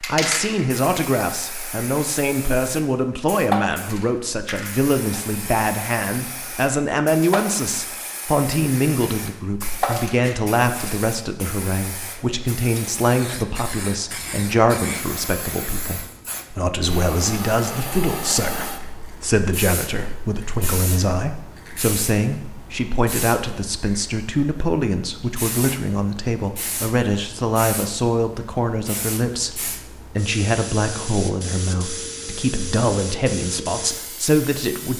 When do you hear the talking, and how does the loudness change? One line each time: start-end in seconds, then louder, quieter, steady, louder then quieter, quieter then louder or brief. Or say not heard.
0.0-34.9 steady.